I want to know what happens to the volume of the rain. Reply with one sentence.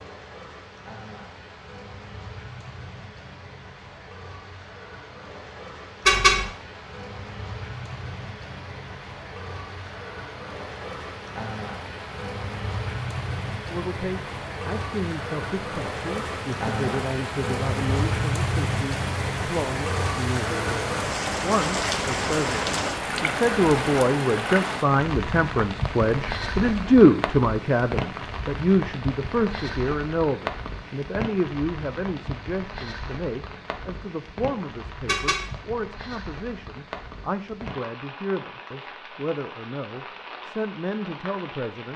The volume of the rain goes up, then down.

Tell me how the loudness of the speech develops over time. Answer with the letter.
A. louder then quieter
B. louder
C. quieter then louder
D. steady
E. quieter
A.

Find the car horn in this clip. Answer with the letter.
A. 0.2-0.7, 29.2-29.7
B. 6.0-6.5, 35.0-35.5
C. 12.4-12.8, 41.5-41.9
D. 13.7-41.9
B.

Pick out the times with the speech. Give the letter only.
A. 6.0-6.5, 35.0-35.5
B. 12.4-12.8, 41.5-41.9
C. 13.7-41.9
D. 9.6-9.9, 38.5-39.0
C.